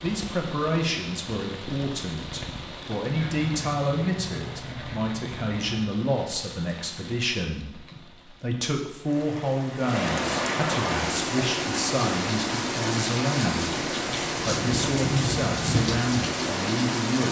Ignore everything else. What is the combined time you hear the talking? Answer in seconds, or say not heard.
17 s.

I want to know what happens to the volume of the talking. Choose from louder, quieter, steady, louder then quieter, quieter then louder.
steady.